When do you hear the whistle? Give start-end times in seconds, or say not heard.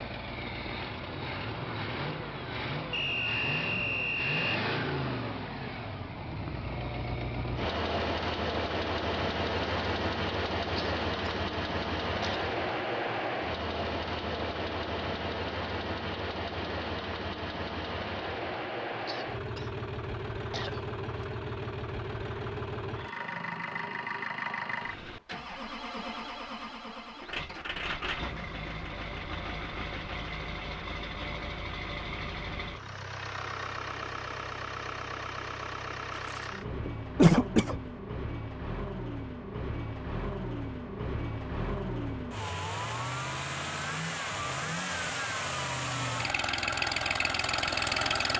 2.9-4.6.